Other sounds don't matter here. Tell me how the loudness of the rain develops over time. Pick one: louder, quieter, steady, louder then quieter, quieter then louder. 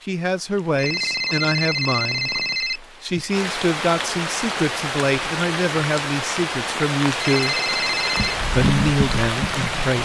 louder.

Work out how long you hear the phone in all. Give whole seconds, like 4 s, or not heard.
4 s.